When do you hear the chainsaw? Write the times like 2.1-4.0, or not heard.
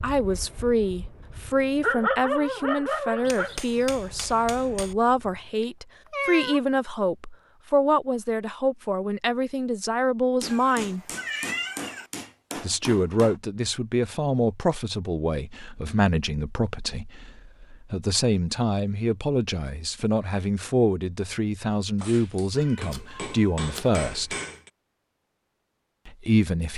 not heard.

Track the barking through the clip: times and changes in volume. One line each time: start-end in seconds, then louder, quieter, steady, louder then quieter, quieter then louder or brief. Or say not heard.
0.0-5.5 louder then quieter.